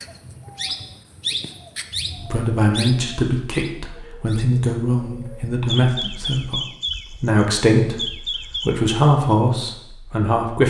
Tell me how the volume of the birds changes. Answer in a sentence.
The volume of the birds goes down, then up.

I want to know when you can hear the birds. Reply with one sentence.
The birds can be heard from 0.0 to 8.8 s.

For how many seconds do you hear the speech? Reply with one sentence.
The speech can be heard for 8 seconds in total.